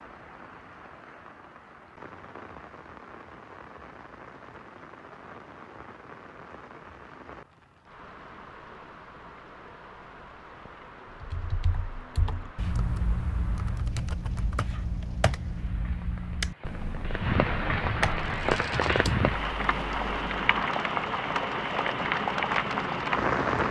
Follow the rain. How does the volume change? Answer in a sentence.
The loudness of the rain goes up.